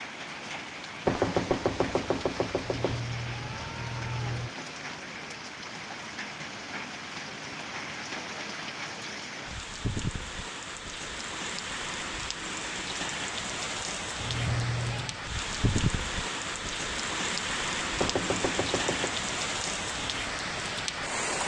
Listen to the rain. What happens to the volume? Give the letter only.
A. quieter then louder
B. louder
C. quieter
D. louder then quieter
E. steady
B.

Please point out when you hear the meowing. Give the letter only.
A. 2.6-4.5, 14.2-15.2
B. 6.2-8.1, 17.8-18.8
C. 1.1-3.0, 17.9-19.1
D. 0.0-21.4
A.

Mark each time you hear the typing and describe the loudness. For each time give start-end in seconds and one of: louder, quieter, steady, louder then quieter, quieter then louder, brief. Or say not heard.
not heard.